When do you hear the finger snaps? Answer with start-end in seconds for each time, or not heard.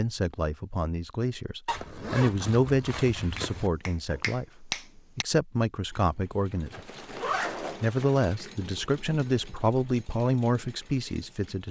3.4-5.2.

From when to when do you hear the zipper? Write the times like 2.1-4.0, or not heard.
1.6-3.7, 6.7-8.2.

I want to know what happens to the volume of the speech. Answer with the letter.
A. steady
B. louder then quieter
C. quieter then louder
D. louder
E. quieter
A.